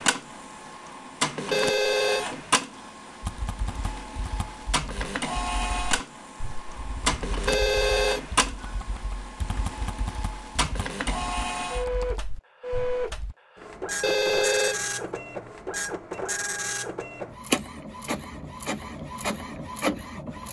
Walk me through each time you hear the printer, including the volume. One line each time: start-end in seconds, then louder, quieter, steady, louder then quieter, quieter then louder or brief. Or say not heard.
0.0-20.4 steady.